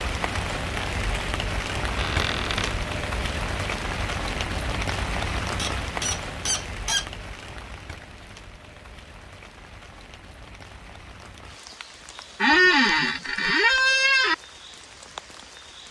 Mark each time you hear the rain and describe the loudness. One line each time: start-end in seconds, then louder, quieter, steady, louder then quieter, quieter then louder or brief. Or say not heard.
0.0-15.8 quieter.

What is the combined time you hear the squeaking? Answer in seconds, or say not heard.
4 s.